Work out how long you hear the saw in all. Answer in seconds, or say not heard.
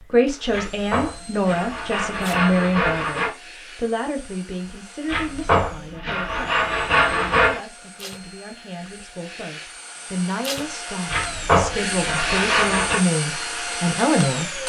7 s.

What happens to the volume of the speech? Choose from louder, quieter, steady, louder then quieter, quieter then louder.
quieter then louder.